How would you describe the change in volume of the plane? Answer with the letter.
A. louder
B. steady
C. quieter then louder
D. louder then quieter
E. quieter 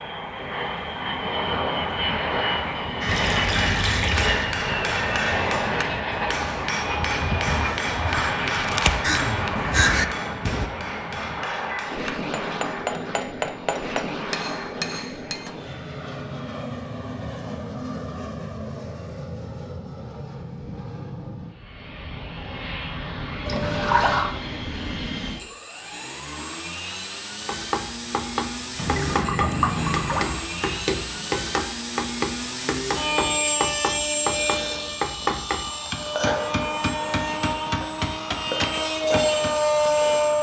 C.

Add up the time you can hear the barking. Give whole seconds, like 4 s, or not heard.
not heard.